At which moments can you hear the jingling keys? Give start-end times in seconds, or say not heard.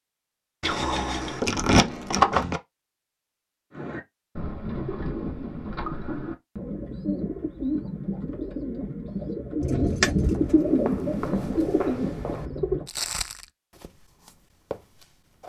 0.6-2.6, 9.6-10.6.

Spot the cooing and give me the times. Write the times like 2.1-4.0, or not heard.
3.7-12.9.